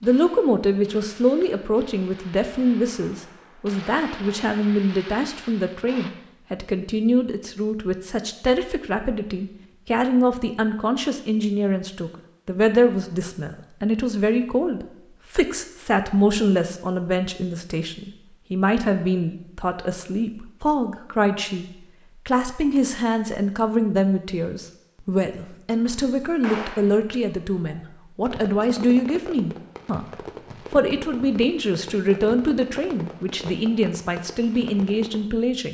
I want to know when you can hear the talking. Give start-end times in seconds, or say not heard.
0.0-30.1, 30.7-35.6.